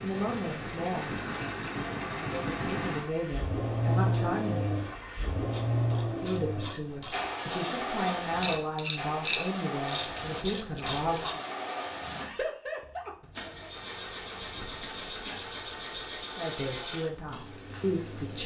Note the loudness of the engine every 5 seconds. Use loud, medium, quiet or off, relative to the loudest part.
loud, loud, medium, medium.